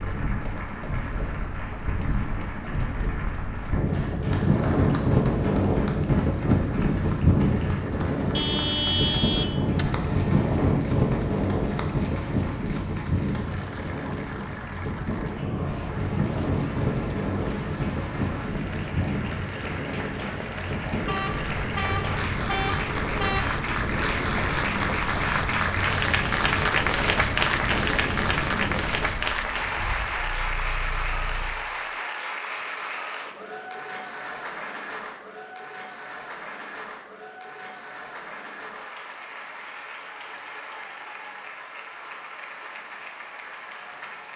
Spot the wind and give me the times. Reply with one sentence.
You can hear the wind from 0.0 to 30.1 s.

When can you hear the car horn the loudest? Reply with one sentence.
The loudest moment of the car horn is at 9 seconds.